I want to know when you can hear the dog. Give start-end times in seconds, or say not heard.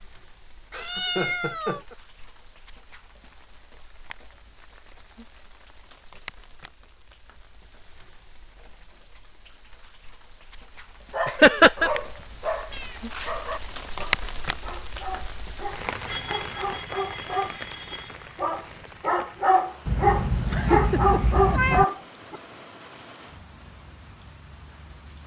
11.1-22.4.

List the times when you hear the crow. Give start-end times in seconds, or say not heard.
not heard.